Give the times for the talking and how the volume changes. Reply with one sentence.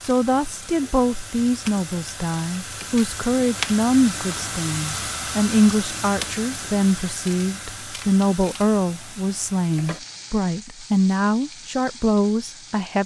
You can hear the talking from 0.0 to 13.0 s, at a steady volume.